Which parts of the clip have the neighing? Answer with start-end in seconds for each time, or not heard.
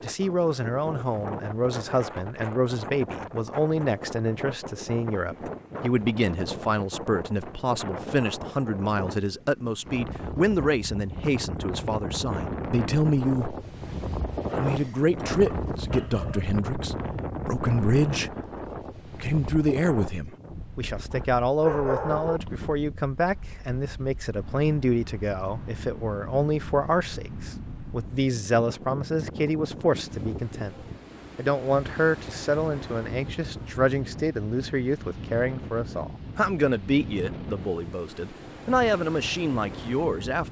not heard.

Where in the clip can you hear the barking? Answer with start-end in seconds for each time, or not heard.
14.4-16.4, 21.1-22.4.